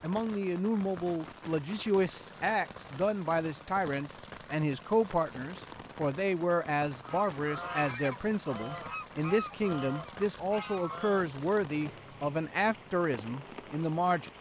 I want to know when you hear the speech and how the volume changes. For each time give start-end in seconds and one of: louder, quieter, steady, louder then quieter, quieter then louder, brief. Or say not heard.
0.0-14.3 steady.